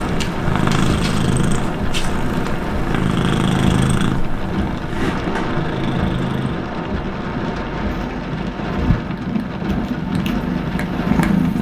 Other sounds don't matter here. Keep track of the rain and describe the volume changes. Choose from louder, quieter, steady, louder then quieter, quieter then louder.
steady.